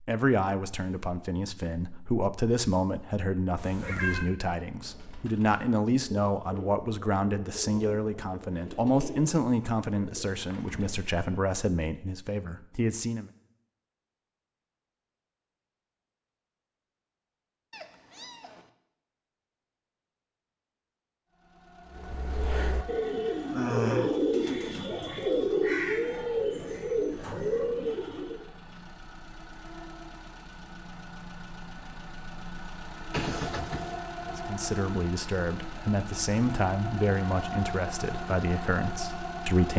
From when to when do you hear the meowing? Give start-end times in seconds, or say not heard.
3.5-4.2, 17.7-18.7, 33.1-34.0.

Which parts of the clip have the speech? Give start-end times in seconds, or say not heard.
0.0-13.3, 34.3-39.7.